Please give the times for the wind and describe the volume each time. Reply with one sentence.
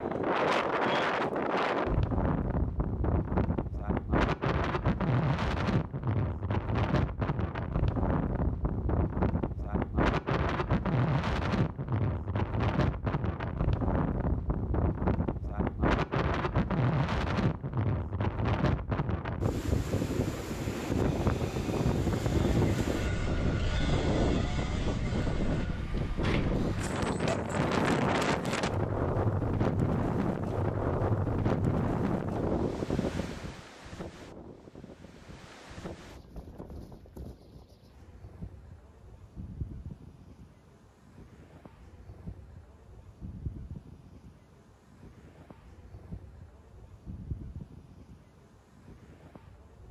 The wind can be heard from 0.0 to 49.8 s, getting quieter.